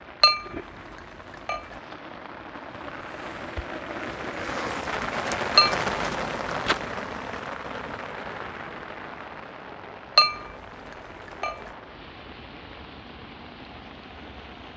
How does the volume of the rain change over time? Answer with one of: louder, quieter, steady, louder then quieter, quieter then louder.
louder then quieter.